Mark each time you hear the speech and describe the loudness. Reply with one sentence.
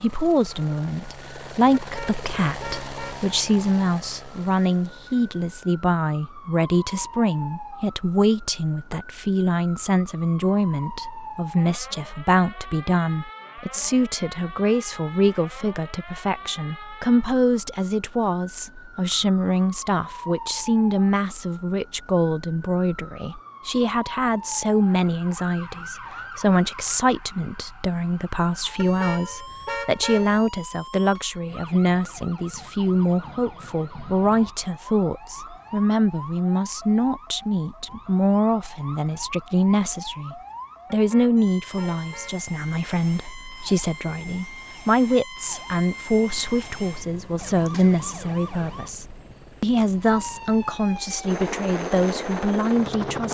The speech can be heard from 0.0 to 53.2 s, at a steady volume.